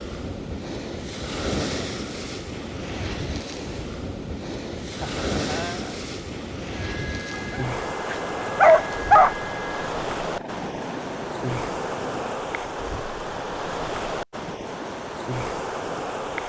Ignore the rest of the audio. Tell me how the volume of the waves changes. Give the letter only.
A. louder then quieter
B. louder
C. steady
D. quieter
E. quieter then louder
C.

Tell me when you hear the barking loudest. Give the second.
9 s.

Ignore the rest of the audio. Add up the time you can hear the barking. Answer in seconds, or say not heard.
2 s.